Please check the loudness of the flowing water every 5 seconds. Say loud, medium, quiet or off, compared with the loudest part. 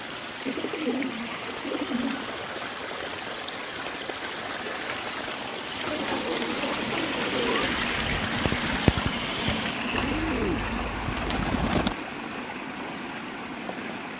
medium, loud, medium.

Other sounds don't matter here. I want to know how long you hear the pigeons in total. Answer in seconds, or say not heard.
6 s.